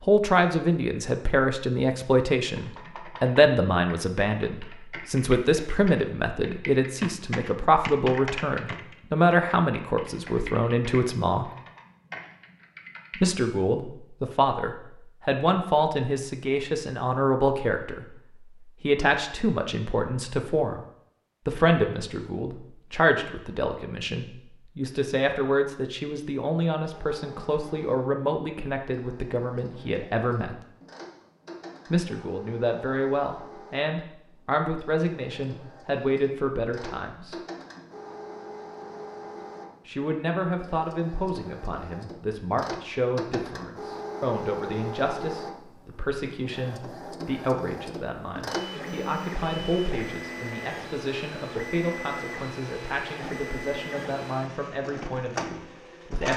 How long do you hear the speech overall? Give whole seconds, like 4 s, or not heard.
50 s.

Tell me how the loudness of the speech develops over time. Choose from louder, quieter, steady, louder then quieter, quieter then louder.
quieter.